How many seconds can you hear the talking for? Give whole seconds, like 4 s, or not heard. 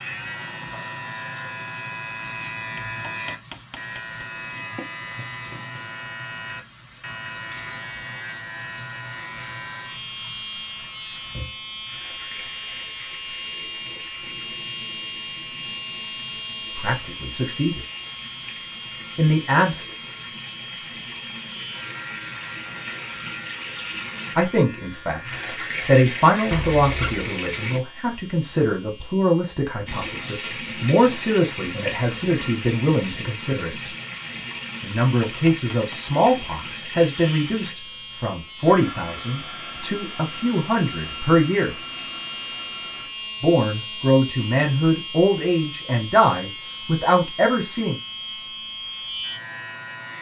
23 s.